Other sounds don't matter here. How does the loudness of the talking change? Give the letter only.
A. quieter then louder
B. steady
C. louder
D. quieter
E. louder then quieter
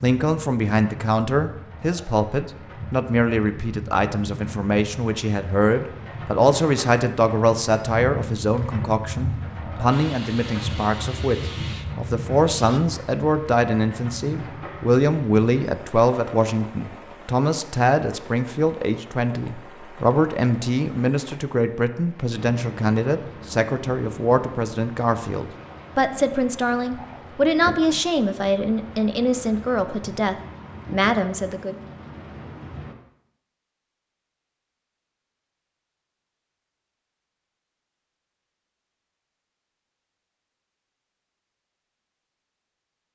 B.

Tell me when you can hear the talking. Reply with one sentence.
The talking can be heard from 0.0 to 31.8 s.